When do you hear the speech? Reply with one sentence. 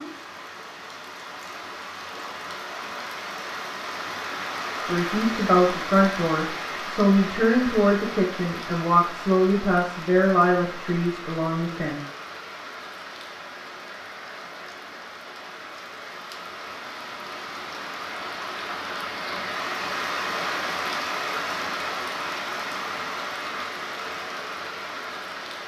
You can hear the speech from 4.8 to 12.0 s.